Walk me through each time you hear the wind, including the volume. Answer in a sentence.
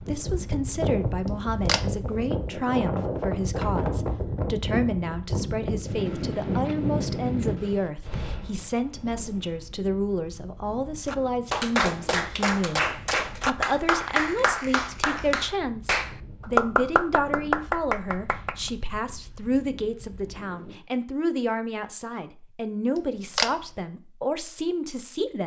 You can hear the wind from 0.0 to 20.8 s, getting quieter.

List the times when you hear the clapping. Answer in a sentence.
The clapping can be heard from 11.1 to 18.7 s.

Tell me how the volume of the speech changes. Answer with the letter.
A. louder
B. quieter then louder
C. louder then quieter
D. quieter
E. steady
E.